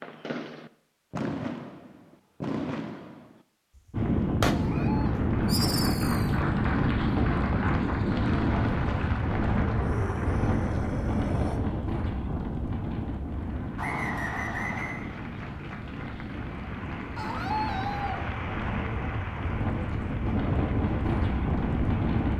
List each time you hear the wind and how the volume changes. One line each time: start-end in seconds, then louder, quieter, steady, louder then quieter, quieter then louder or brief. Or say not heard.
3.9-22.3 quieter then louder.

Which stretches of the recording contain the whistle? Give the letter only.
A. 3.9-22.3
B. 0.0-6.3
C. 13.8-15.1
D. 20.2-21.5
C.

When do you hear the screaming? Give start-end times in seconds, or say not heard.
4.5-5.2, 9.8-11.6, 17.1-18.2.